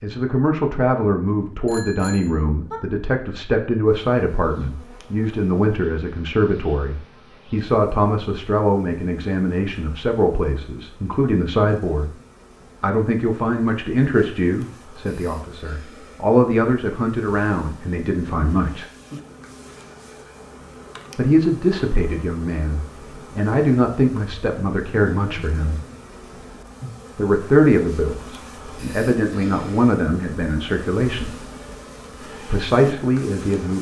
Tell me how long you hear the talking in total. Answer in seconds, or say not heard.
28 s.